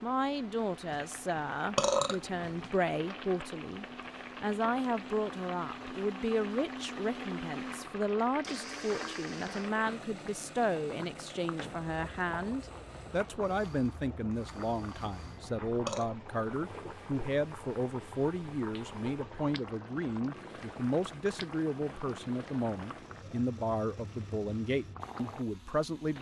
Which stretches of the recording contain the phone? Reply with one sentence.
The phone can't be heard in this clip.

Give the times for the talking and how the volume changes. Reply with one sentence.
The talking can be heard from 0.0 to 26.1 s, at a steady volume.